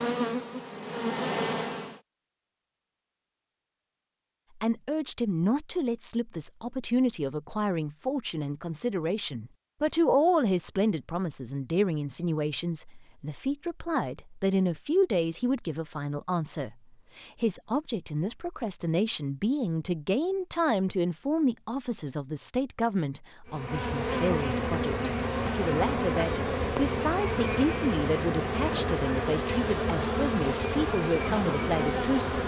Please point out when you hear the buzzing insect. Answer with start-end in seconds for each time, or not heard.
0.0-2.0, 23.4-32.4.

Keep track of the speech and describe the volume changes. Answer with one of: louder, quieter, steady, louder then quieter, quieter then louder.
steady.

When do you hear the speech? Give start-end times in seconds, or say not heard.
4.5-32.4.